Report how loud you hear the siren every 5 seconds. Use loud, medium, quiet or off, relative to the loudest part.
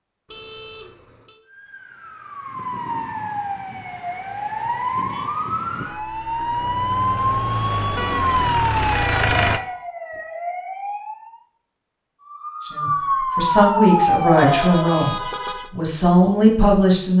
medium, loud, loud, off.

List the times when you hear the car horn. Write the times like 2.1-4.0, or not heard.
0.2-1.4, 8.0-9.8, 14.3-15.7.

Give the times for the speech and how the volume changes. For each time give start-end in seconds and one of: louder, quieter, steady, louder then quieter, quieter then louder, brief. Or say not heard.
12.7-17.1 quieter then louder.